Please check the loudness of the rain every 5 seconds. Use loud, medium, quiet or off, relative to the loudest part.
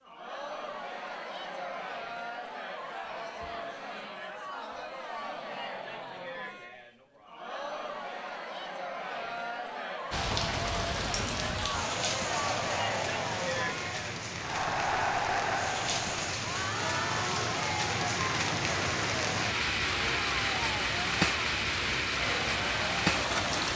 off, off, medium, loud, loud.